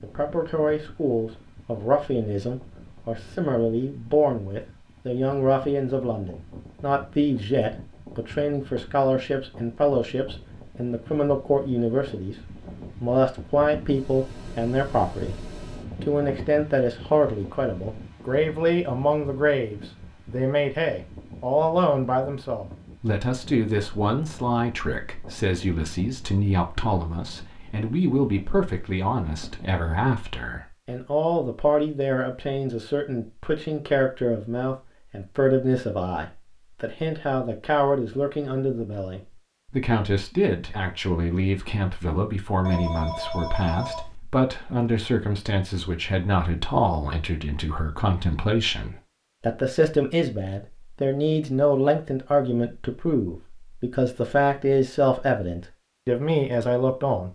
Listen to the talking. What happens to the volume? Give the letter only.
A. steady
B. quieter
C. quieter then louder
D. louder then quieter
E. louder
A.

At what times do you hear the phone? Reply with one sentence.
The phone can be heard from 42.6 to 44.1 s.